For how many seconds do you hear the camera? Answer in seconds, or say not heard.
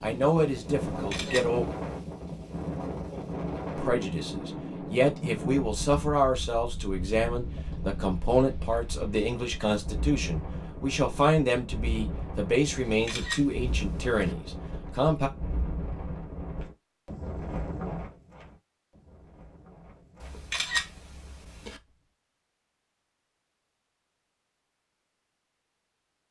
4 s.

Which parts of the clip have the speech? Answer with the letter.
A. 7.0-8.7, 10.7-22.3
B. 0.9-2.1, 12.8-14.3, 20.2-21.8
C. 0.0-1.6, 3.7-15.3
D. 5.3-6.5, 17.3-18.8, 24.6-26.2
C.